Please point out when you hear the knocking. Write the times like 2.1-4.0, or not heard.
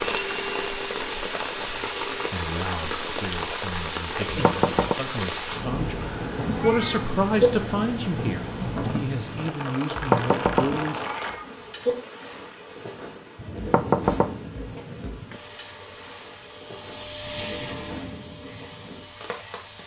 4.2-5.0, 9.9-10.8, 13.6-15.3.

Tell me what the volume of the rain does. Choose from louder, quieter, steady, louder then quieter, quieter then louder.
quieter.